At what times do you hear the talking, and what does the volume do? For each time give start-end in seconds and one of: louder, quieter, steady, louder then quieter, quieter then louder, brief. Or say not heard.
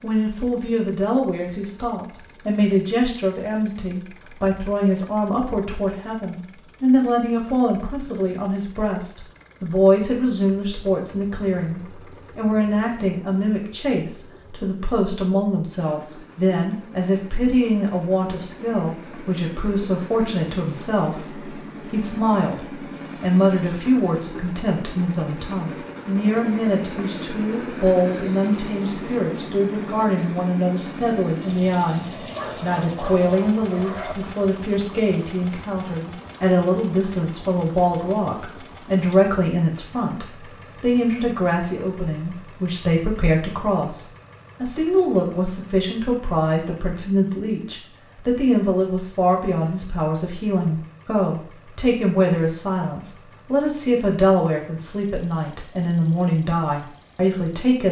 0.0-57.8 steady.